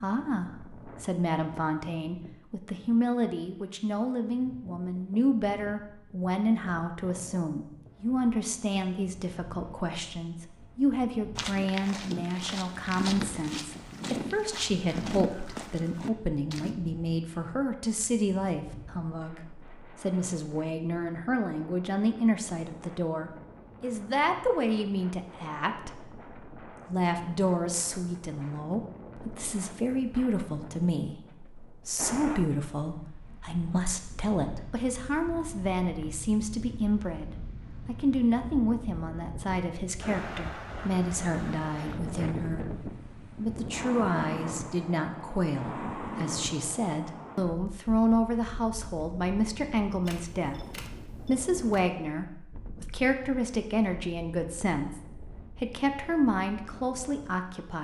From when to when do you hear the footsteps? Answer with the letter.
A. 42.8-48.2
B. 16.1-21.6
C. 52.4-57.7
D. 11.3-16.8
D.